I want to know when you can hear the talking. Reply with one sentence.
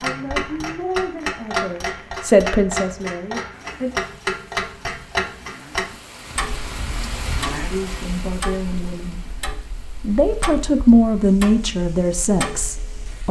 You can hear the talking from 0.0 to 3.9 s and from 7.7 to 13.2 s.